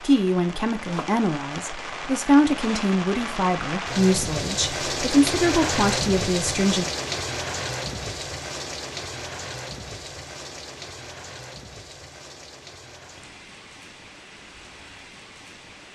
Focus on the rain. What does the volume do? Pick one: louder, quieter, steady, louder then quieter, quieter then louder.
louder then quieter.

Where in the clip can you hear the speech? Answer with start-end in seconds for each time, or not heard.
0.0-6.8.